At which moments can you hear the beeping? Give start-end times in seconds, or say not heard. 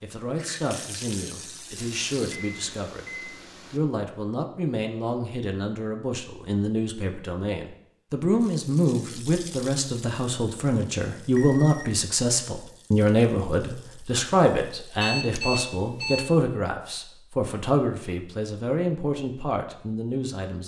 1.8-3.8, 11.2-11.9, 15.0-16.2.